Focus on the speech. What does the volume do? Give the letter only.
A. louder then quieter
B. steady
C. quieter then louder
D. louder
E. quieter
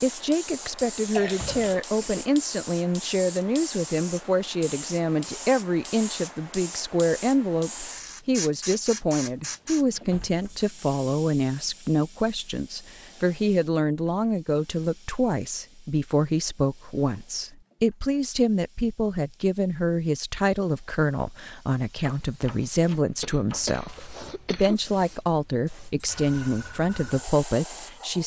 B.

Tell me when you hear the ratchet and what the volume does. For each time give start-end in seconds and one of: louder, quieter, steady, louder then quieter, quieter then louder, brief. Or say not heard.
not heard.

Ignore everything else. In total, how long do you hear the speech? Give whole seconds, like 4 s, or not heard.
28 s.